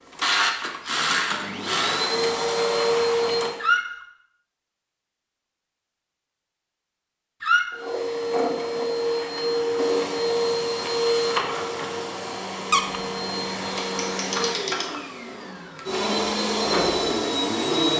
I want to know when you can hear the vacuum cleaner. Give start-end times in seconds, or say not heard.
0.0-3.6, 7.7-17.9.